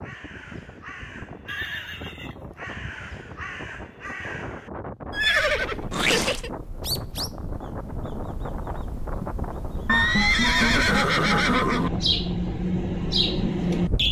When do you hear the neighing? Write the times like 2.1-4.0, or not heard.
1.4-2.6, 5.1-6.5, 9.8-11.9.